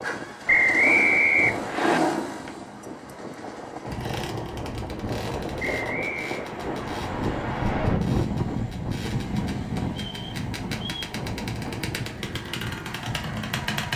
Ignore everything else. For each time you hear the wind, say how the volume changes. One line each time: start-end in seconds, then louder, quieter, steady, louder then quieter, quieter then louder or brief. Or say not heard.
0.0-13.8 louder then quieter.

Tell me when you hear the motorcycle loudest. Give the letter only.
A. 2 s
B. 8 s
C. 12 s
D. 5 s
A.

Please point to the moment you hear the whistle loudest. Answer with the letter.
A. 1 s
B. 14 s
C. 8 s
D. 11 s
A.